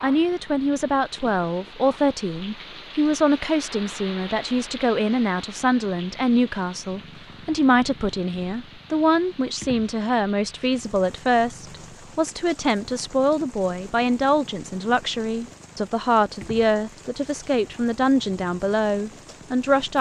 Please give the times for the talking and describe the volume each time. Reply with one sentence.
You can hear the talking from 0.0 to 19.9 s, at a steady volume.